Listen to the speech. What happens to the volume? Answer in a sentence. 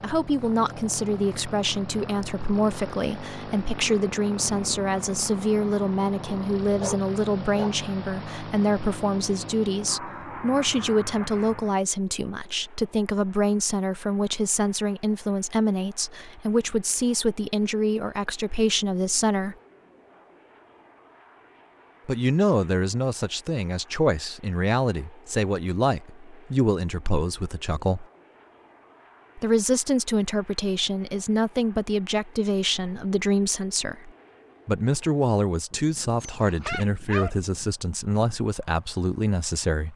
The loudness of the speech stays about the same.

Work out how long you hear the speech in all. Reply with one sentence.
You can hear the speech for 36 seconds altogether.